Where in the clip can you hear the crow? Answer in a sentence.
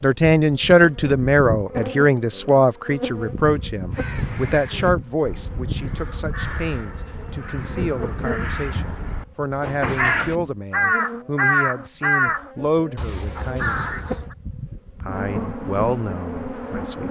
The crow can be heard from 3.9 to 14.3 s.